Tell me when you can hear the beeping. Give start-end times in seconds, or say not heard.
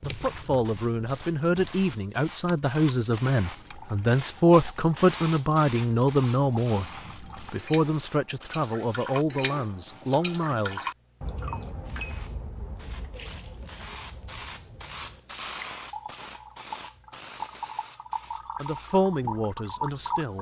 not heard.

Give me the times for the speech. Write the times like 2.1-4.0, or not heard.
0.0-10.8, 18.6-20.3.